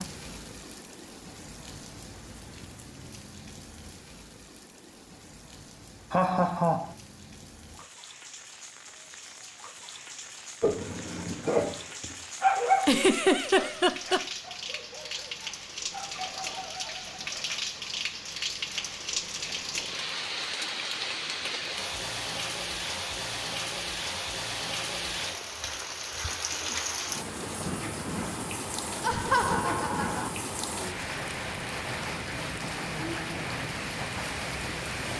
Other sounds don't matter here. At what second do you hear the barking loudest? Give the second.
13 s.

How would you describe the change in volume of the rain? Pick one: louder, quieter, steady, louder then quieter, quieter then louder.
louder.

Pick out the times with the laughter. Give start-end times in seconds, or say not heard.
6.1-7.0, 12.8-14.2, 29.0-30.3.